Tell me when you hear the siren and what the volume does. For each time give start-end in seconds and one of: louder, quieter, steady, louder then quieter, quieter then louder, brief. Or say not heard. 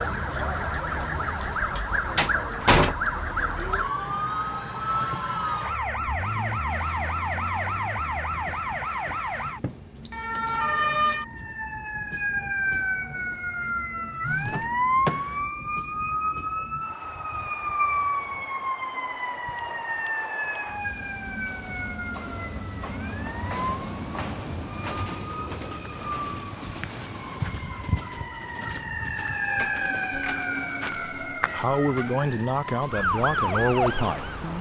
0.0-34.5 quieter then louder.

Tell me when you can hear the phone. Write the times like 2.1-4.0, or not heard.
14.2-14.7.